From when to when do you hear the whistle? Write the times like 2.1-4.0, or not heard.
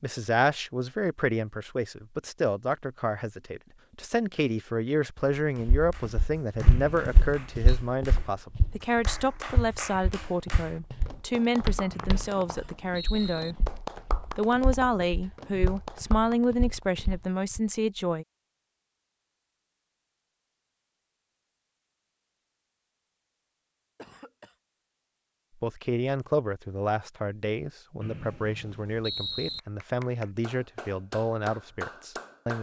6.6-7.8, 11.9-13.6, 28.0-29.6.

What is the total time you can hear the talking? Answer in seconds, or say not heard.
25 s.